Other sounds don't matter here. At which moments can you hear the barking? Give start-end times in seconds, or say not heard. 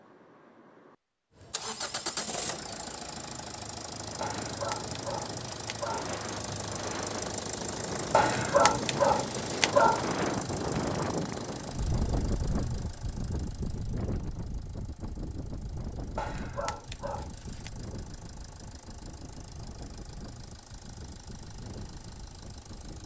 4.2-6.2, 8.1-10.1, 16.1-17.7.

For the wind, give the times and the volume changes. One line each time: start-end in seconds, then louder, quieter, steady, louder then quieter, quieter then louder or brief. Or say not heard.
3.9-23.0 louder then quieter.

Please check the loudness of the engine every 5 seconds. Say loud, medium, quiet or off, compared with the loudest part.
loud, loud, medium, quiet, quiet.